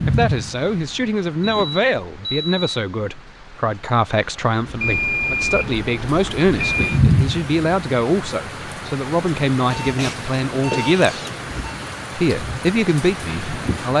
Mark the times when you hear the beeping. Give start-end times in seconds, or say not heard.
1.4-2.7, 4.8-7.0, 9.7-11.7.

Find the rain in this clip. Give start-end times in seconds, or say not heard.
0.0-13.9.